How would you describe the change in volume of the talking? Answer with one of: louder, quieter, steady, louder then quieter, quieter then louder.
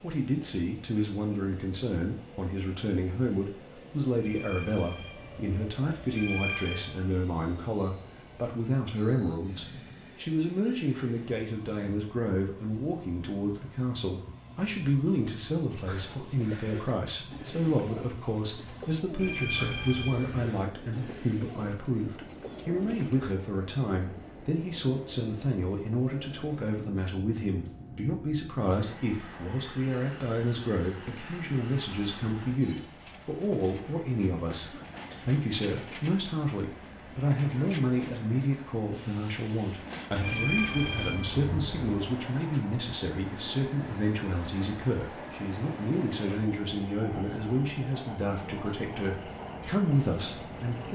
steady.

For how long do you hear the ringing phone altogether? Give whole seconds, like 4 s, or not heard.
6 s.